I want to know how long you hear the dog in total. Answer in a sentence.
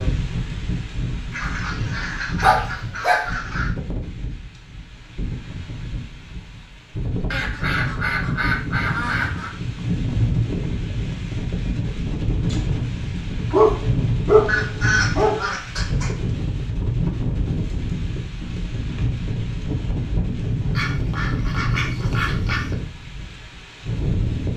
You can hear the dog for 3 seconds altogether.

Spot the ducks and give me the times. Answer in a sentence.
You can hear the ducks from 1.3 to 3.7 s, from 7.3 to 9.5 s, from 14.4 to 16.1 s and from 20.8 to 22.8 s.